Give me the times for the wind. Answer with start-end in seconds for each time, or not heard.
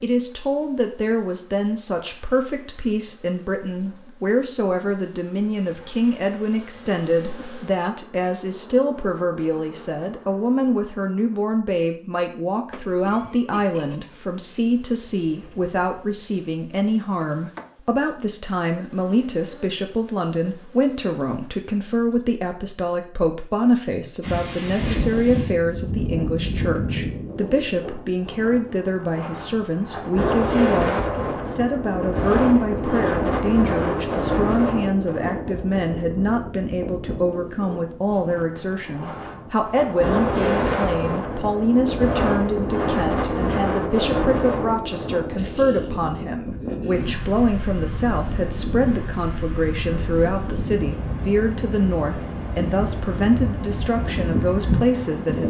24.2-55.4.